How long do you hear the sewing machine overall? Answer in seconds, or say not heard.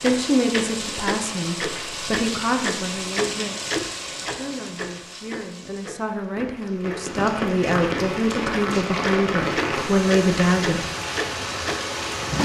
not heard.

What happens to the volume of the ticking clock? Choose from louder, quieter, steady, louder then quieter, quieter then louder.
quieter then louder.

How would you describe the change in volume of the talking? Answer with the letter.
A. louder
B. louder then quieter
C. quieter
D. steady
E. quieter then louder
E.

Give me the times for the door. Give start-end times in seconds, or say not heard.
not heard.